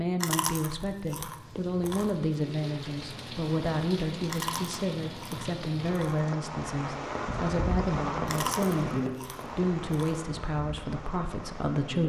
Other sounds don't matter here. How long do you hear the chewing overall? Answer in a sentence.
The chewing can be heard for 6 seconds in total.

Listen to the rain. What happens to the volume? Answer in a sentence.
The loudness of the rain goes up, then down.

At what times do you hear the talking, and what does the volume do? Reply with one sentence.
The talking can be heard from 0.0 to 12.0 s, at a steady volume.